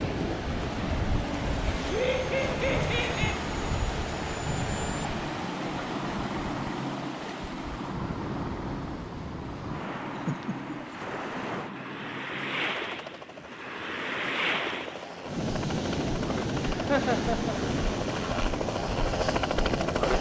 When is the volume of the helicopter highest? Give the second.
20 s.